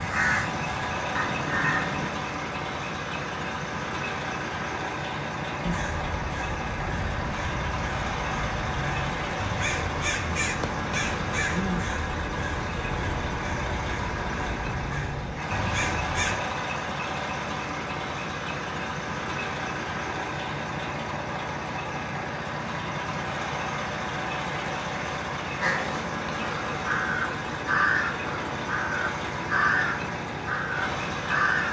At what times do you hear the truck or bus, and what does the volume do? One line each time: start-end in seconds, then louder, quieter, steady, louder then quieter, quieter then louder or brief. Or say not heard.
0.0-31.6 steady.